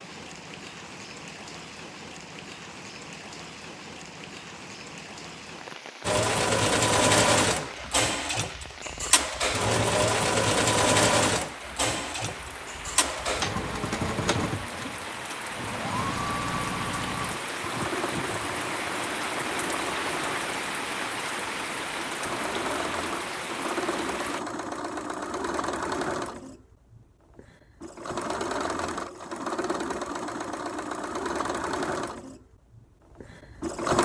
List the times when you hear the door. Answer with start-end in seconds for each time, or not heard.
not heard.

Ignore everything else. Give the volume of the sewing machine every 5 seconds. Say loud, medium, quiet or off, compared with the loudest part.
off, loud, loud, medium, medium, medium, medium.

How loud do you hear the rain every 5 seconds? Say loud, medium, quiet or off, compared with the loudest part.
medium, medium, medium, loud, loud, off, off.